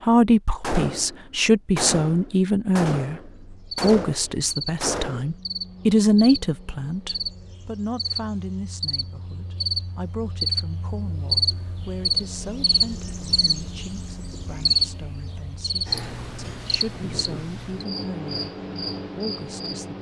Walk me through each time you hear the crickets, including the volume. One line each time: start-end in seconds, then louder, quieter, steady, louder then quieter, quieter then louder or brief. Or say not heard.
3.3-19.9 louder then quieter.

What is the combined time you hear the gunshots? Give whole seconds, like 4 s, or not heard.
5 s.